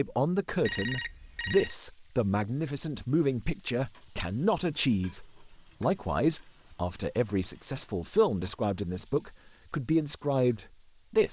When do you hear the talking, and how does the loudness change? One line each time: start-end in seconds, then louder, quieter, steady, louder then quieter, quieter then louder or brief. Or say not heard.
0.0-11.2 steady.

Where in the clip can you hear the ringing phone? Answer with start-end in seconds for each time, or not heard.
0.6-1.8.